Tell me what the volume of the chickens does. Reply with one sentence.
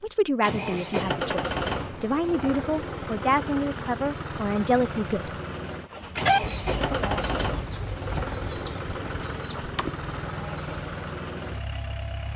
The loudness of the chickens goes down, then up.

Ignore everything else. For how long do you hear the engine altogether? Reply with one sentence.
You can hear the engine for 12 seconds altogether.